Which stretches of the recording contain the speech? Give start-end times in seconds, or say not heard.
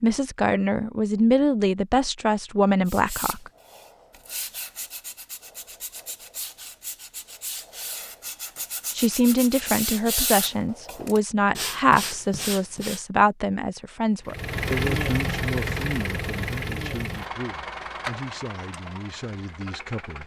0.0-3.5, 8.9-20.2.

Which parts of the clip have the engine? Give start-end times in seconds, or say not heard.
14.2-20.2.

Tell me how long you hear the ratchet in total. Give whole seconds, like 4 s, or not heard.
not heard.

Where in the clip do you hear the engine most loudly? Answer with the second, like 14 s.
15 s.